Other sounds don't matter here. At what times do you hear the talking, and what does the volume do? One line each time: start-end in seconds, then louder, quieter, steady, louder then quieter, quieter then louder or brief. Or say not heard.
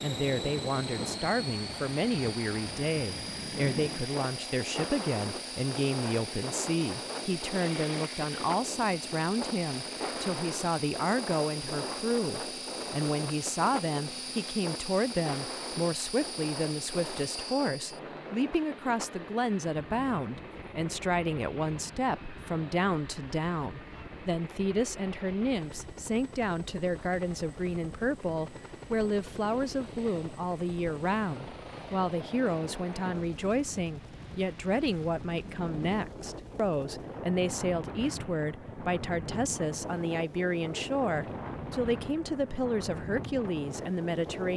0.0-44.5 steady.